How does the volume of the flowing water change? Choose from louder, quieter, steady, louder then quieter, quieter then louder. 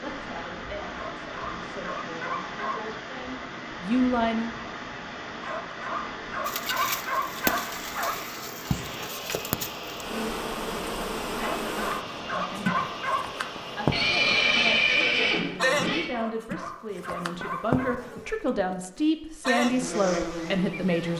steady.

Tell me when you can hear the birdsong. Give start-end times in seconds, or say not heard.
not heard.